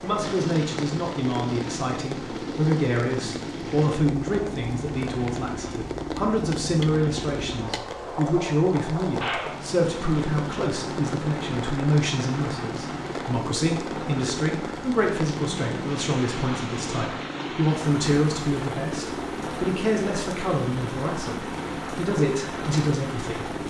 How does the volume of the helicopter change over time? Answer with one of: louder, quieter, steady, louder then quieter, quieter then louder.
steady.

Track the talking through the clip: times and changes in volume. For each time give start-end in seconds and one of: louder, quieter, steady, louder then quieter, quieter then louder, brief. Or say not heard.
0.0-23.6 steady.